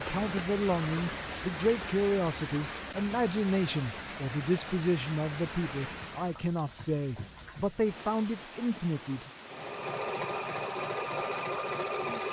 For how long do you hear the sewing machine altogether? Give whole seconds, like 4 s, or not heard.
3 s.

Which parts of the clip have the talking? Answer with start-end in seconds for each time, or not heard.
0.0-9.3.